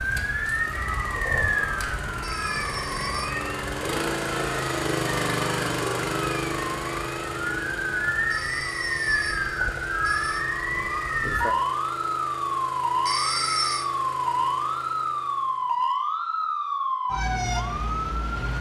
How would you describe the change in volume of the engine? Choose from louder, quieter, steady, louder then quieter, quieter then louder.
louder then quieter.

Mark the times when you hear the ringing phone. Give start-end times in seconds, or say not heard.
2.2-3.3, 8.3-10.4, 13.1-13.9.